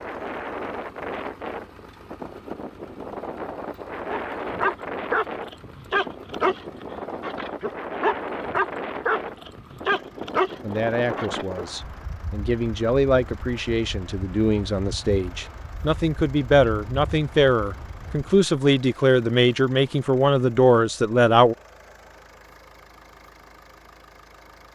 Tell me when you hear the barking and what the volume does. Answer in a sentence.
You can hear the barking from 4.0 to 11.7 s, at a steady volume.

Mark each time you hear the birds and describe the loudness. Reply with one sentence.
You can't hear the birds here.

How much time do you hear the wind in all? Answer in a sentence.
You can hear the wind for 18 seconds altogether.